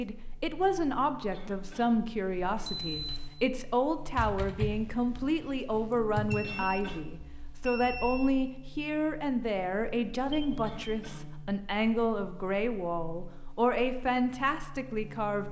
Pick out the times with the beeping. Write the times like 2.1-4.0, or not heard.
2.6-3.3, 6.3-8.3, 10.3-10.9.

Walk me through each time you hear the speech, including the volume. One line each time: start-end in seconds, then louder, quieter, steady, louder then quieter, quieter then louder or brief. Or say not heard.
0.0-15.4 steady.